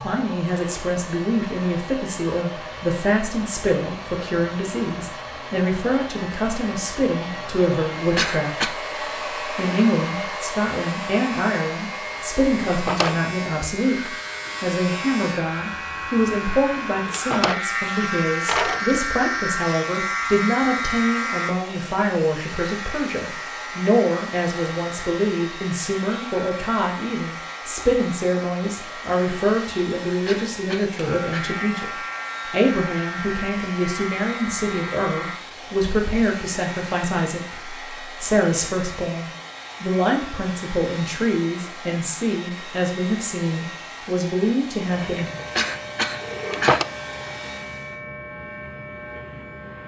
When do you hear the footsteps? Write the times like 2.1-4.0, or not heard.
not heard.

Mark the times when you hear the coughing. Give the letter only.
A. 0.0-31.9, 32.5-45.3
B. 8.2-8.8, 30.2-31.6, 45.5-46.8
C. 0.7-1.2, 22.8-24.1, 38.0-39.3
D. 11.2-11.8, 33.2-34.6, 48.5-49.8
B.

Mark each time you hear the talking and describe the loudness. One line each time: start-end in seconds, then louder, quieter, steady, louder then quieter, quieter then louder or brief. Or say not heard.
0.0-31.9 steady
32.5-45.3 steady.